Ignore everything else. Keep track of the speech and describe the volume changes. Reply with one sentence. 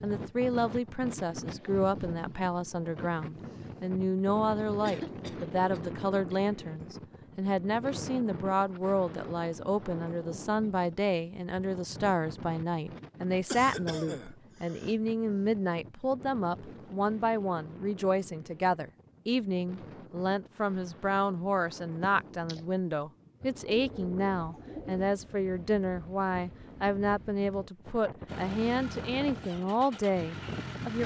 The volume of the speech stays about the same.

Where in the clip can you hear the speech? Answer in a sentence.
The speech can be heard from 0.0 to 31.0 s.